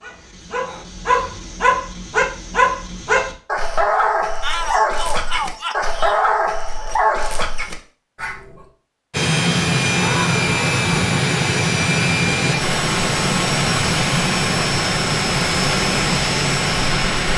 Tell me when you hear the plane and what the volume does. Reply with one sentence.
You can hear the plane from 9.1 to 17.3 s, at a steady volume.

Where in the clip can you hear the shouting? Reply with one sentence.
You can hear the shouting from 4.4 to 6.2 s and from 9.9 to 11.1 s.